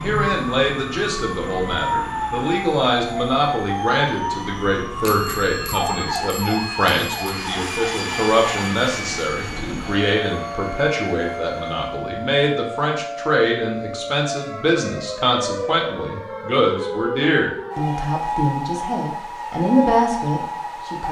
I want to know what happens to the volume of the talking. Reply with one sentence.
The volume of the talking stays about the same.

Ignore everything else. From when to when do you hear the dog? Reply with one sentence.
You can't hear the dog here.